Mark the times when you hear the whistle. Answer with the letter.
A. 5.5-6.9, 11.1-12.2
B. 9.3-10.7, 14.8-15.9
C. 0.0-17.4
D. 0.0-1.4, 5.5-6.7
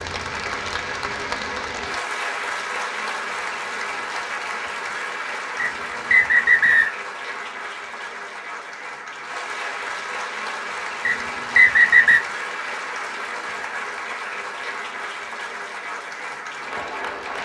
A.